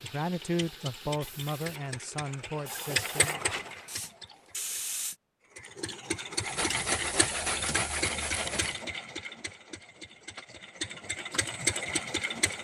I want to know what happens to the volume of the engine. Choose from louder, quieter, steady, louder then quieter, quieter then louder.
louder.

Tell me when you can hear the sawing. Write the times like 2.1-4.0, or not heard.
6.3-8.8.